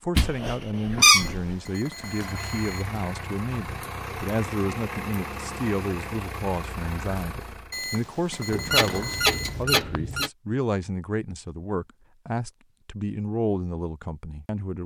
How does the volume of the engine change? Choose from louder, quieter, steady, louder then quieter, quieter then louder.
steady.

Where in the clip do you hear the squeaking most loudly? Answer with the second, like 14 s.
1 s.